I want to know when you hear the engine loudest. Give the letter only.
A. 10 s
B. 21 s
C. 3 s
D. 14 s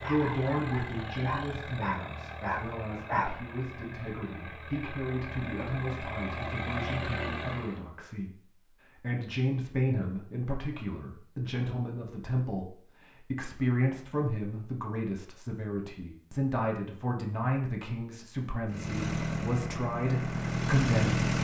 B.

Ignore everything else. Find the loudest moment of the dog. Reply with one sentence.
The volume of the dog peaks at 3 seconds.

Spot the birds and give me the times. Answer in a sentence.
You can't hear the birds here.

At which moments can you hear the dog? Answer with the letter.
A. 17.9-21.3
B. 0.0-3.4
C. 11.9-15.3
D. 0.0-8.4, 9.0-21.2
B.